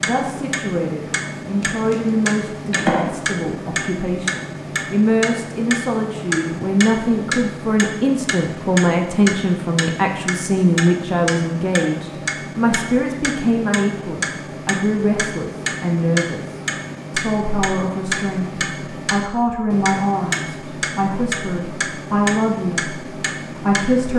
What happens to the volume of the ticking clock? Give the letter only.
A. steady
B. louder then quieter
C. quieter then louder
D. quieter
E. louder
A.